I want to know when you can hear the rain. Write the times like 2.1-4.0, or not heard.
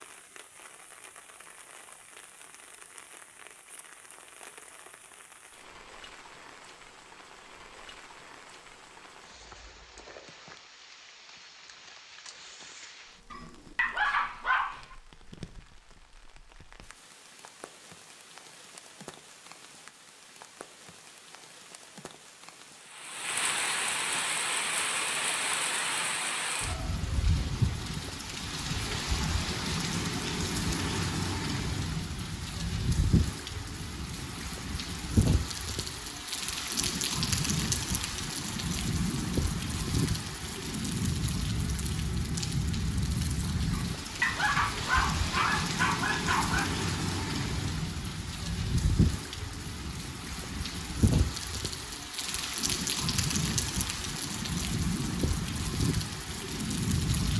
0.0-57.3.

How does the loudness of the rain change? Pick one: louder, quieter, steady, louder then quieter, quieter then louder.
louder.